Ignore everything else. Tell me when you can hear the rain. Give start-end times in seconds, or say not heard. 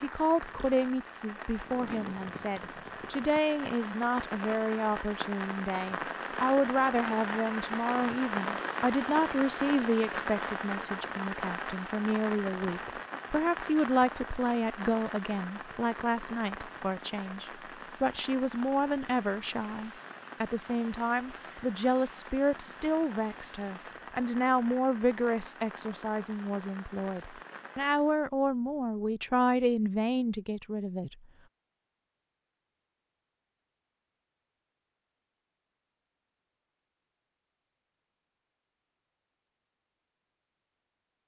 0.0-28.2.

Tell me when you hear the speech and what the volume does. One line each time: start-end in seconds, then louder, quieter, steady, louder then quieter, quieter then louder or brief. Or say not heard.
0.0-31.1 steady.